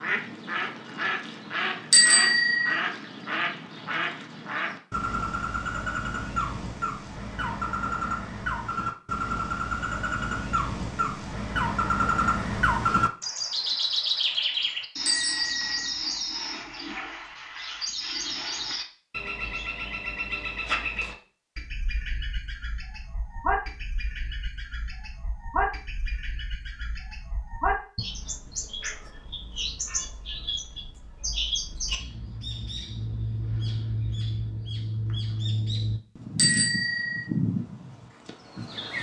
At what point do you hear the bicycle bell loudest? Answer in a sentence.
The loudest moment of the bicycle bell is at 2 seconds.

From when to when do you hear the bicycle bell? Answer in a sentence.
The bicycle bell can be heard from 1.9 to 2.8 s, from 15.1 to 15.9 s and from 36.4 to 37.2 s.